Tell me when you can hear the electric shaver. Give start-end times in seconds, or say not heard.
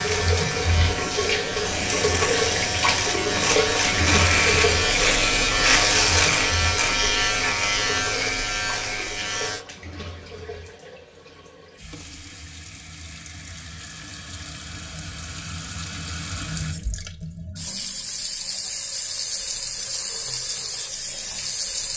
0.0-9.7.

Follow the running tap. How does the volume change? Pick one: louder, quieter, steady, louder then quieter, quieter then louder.
quieter then louder.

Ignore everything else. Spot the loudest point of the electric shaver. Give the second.
6 s.